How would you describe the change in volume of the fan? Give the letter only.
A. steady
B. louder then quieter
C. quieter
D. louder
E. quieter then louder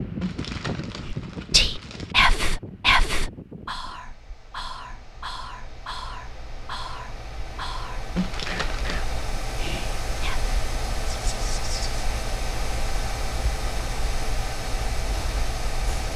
E.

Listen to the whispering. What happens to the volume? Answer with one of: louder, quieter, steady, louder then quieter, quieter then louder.
quieter.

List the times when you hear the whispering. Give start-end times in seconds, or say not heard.
1.1-12.0.